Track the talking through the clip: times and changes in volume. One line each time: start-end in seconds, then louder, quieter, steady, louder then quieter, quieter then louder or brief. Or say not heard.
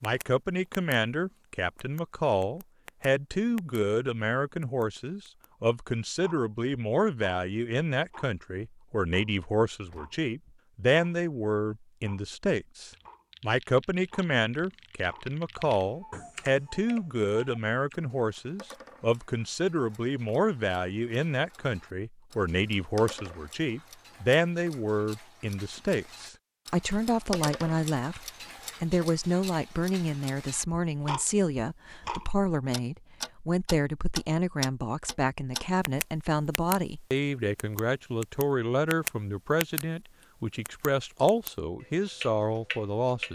0.0-43.3 steady.